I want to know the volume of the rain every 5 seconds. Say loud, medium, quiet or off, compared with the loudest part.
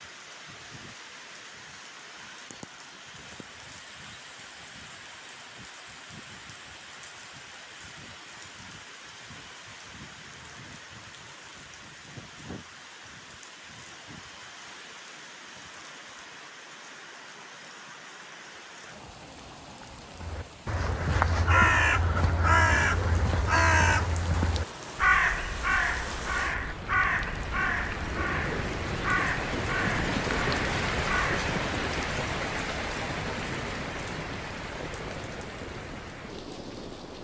quiet, quiet, quiet, quiet, quiet, loud, loud, medium.